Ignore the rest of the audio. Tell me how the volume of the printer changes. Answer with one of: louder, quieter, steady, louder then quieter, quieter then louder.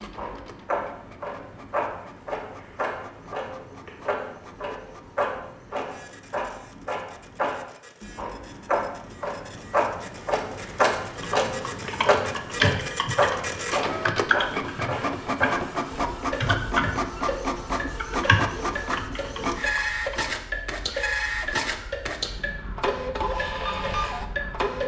louder.